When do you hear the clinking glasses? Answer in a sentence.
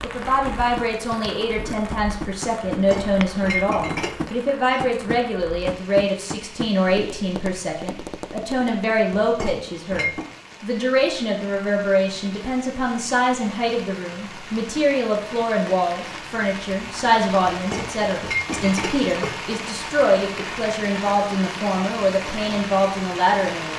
The clinking glasses can be heard from 2.7 to 4.3 s, from 9.1 to 10.2 s and from 17.5 to 19.4 s.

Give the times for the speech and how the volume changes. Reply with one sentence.
The speech can be heard from 0.0 to 23.7 s, at a steady volume.